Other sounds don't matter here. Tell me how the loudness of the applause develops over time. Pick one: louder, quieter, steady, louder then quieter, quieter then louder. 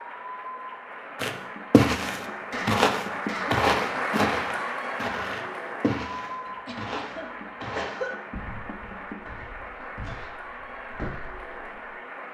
louder then quieter.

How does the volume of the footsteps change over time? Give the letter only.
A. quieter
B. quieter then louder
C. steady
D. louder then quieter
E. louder
A.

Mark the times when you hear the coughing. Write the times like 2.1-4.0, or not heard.
2.5-3.7, 6.5-8.2.